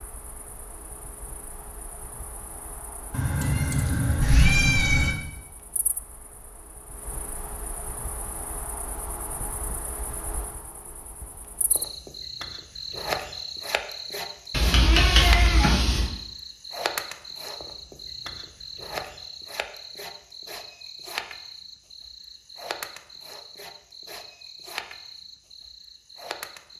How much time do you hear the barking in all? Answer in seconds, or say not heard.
not heard.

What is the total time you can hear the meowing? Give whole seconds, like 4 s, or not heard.
4 s.